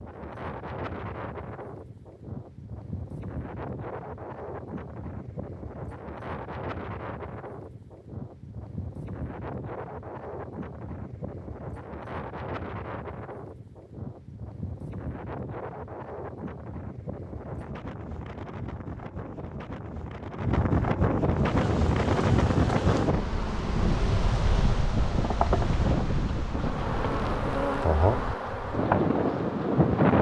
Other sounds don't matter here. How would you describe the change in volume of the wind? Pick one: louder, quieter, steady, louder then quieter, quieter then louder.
louder.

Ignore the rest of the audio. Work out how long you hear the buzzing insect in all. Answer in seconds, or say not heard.
9 s.